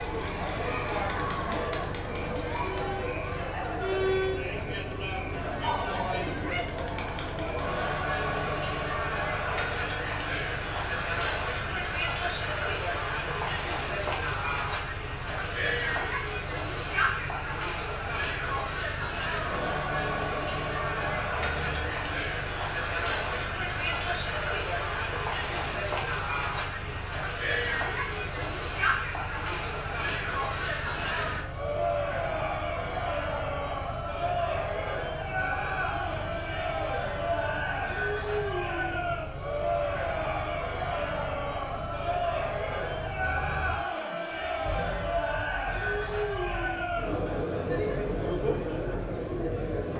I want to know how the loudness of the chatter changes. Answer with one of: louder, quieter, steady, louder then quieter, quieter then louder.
steady.